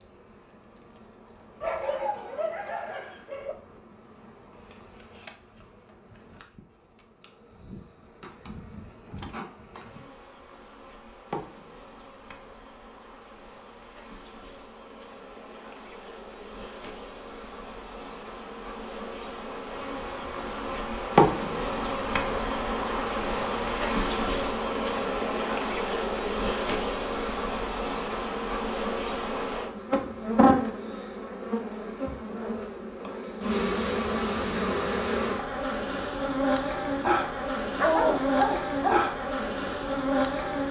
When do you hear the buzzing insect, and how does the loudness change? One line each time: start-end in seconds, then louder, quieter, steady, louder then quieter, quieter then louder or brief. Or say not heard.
0.0-40.6 louder.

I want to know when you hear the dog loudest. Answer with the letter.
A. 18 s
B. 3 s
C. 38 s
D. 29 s
C.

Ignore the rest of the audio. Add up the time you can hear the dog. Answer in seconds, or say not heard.
3 s.